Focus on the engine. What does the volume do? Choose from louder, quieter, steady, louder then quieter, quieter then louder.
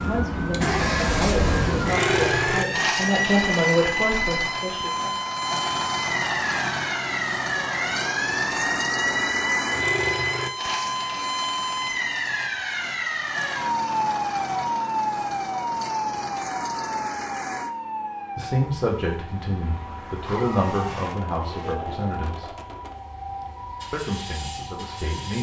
quieter.